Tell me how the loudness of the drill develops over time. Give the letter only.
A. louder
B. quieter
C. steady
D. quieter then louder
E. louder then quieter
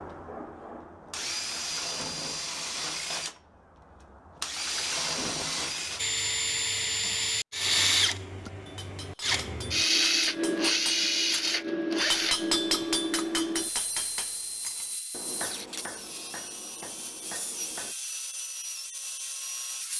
E.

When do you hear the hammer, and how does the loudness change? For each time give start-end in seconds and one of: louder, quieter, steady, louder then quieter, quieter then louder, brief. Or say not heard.
8.3-17.9 louder then quieter.